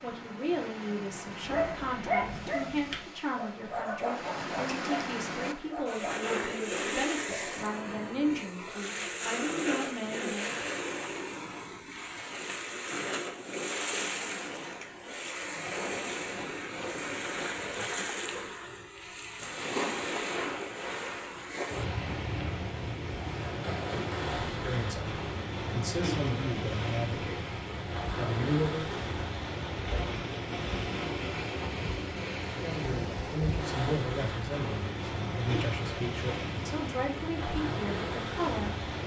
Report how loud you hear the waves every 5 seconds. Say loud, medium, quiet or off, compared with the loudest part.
medium, loud, loud, loud, loud, loud, loud, loud.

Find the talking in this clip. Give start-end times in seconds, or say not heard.
0.0-10.7, 24.5-27.4, 28.1-29.0, 32.5-38.8.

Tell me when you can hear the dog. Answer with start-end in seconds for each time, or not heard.
1.4-6.3.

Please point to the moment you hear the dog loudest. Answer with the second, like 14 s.
2 s.